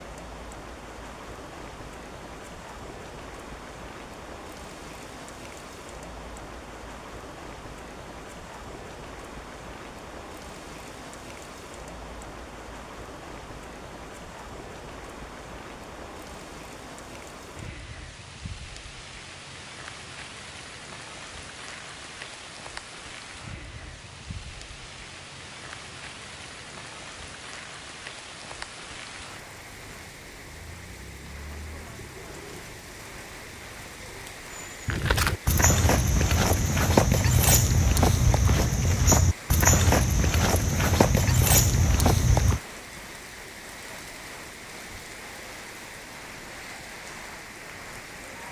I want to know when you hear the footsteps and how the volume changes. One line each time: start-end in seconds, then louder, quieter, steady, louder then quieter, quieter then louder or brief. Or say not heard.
34.9-42.6 steady.